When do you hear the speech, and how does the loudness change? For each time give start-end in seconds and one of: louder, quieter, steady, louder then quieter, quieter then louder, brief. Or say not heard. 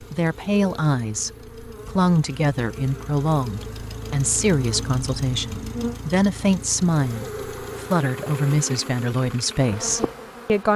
0.1-10.7 steady.